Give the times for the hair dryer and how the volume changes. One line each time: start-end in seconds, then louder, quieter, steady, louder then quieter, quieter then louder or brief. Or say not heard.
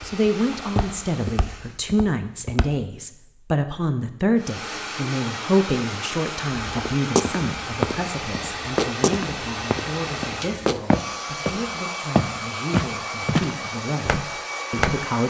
0.0-1.9 brief
4.3-15.2 steady.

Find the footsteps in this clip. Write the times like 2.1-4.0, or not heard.
0.0-2.7, 6.6-15.0.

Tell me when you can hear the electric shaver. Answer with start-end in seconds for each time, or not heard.
not heard.